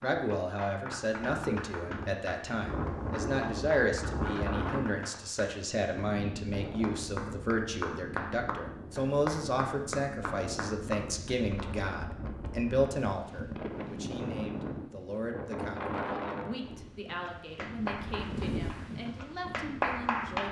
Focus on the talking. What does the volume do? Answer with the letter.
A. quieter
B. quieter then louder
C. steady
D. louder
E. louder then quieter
A.